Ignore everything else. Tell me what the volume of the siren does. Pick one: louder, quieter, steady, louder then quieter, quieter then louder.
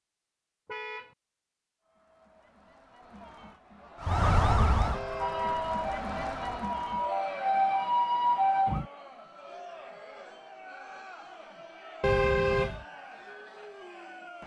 quieter then louder.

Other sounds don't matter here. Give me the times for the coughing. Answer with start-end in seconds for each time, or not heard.
not heard.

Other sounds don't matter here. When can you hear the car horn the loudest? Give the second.
12 s.